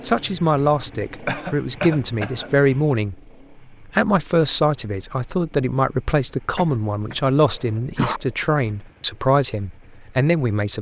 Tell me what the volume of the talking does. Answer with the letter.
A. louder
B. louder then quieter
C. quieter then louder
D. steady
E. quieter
D.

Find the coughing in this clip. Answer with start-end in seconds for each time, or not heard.
1.2-2.5, 6.5-8.2.